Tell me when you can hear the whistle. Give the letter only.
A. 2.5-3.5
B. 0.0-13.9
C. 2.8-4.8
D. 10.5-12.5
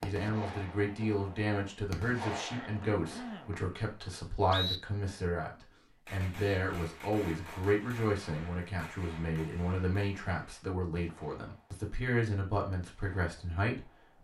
C.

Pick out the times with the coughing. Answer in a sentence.
You can hear the coughing from 2.5 to 3.5 s.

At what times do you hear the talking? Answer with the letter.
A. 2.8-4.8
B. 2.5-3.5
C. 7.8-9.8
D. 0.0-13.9
D.